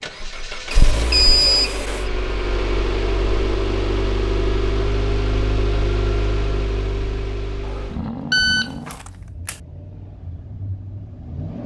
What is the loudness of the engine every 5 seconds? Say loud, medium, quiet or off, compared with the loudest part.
loud, loud, medium.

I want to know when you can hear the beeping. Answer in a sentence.
The beeping can be heard from 0.7 to 2.1 s and from 7.7 to 9.6 s.